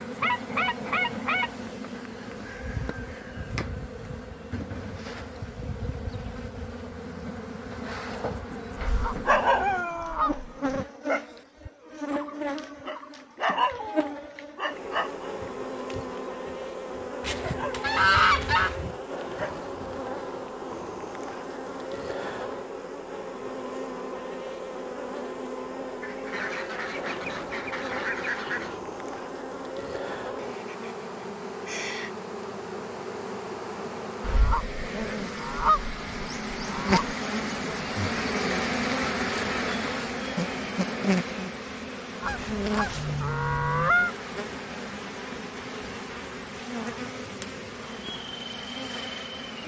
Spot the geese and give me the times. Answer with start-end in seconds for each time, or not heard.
0.2-1.5, 8.8-10.8, 17.2-18.9, 26.0-28.8, 34.2-37.1, 42.2-44.1.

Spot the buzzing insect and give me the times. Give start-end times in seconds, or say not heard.
0.0-49.6.